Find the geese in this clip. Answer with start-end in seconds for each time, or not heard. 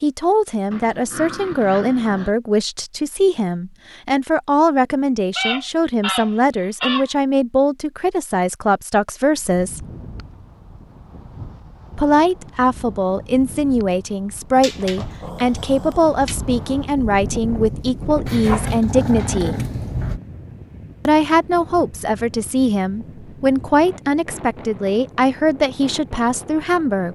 5.3-7.1.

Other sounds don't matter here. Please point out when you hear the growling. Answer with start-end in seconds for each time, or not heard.
0.7-2.4, 14.6-16.4, 18.2-20.2.